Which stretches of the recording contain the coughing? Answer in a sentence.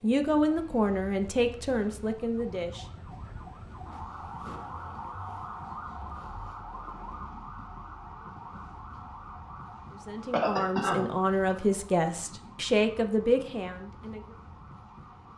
The coughing can be heard from 10.3 to 11.1 s.